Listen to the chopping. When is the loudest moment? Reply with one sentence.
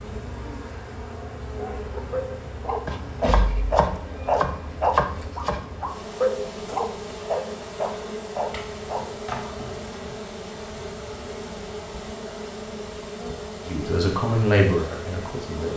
The loudest moment of the chopping is at 5 seconds.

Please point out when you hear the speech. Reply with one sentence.
You can hear the speech from 13.7 to 15.7 s.